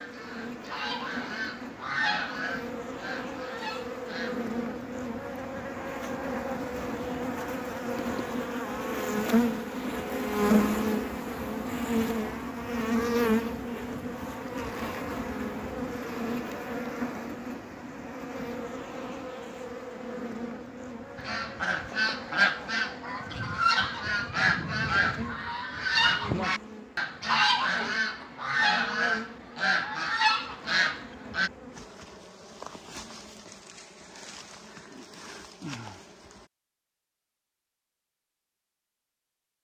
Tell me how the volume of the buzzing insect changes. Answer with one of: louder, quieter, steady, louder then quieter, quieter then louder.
louder then quieter.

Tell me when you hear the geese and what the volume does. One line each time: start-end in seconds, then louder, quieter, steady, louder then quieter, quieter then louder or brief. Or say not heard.
0.0-4.5 louder then quieter
21.1-31.5 steady.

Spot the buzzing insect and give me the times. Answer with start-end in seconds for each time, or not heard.
0.0-36.5.